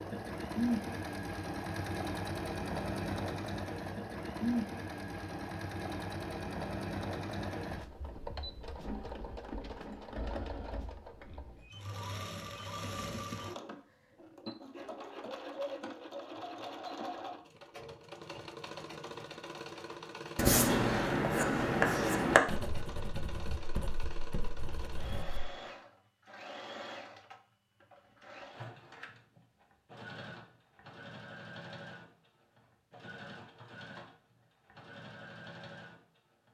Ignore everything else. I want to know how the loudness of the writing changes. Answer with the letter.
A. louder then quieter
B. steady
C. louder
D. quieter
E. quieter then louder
D.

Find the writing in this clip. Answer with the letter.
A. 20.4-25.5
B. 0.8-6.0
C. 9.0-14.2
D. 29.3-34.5
A.